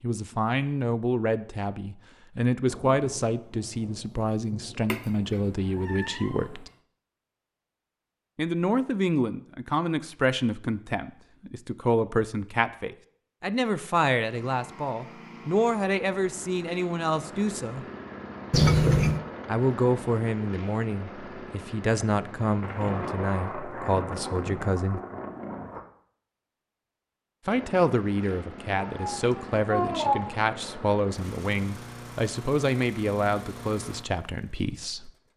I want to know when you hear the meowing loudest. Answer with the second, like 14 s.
19 s.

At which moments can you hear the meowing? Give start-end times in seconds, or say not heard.
4.9-6.5, 18.5-19.2, 28.9-30.3.